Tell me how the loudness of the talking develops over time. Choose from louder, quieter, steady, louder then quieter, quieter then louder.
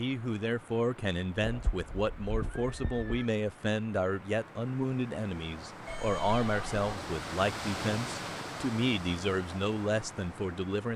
steady.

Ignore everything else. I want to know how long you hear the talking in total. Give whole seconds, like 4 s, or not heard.
11 s.